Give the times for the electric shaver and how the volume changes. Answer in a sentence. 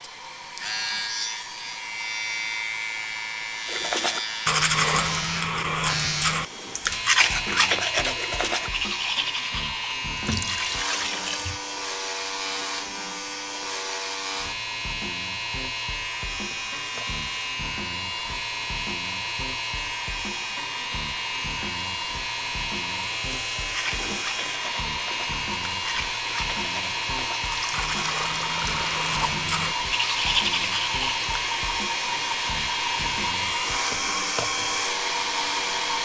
You can hear the electric shaver from 0.0 to 36.0 s, at a steady volume.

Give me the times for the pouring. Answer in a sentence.
The pouring can be heard from 10.2 to 11.6 s and from 27.4 to 29.4 s.